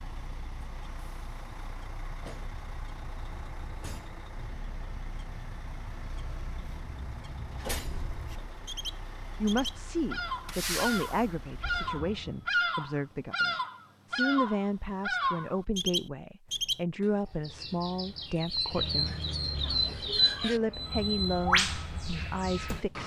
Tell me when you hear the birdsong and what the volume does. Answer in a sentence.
You can hear the birdsong from 0.0 to 22.8 s, getting louder.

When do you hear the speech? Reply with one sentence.
You can hear the speech from 9.4 to 19.1 s and from 20.4 to 23.0 s.